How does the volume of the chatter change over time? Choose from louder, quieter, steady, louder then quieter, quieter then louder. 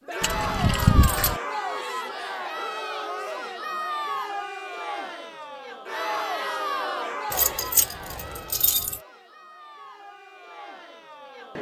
quieter.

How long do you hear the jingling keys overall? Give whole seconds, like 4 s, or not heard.
3 s.